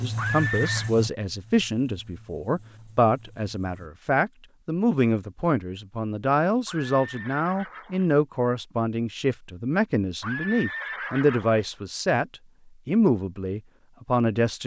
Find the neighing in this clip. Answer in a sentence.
You can hear the neighing from 0.1 to 0.9 s, from 6.7 to 8.1 s and from 10.2 to 11.7 s.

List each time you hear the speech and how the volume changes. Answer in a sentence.
You can hear the speech from 0.0 to 12.2 s, at a steady volume; and briefly from 12.8 to 14.6 s.